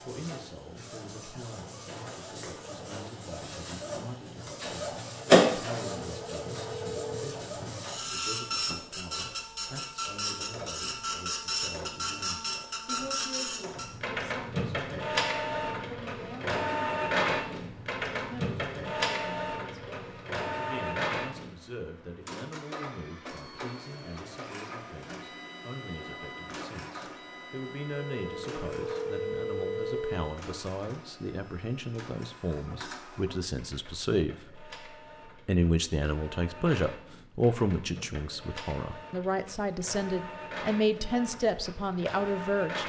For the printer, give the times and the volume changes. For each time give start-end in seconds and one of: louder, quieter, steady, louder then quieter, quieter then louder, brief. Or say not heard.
0.0-42.8 quieter.